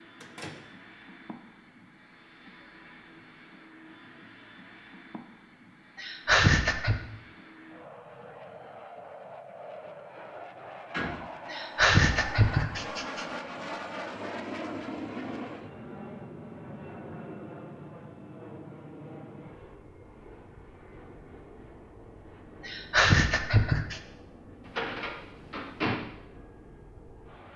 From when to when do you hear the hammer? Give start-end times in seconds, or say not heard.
not heard.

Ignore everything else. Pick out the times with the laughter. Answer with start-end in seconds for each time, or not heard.
6.0-7.0, 11.5-13.2, 22.6-24.0.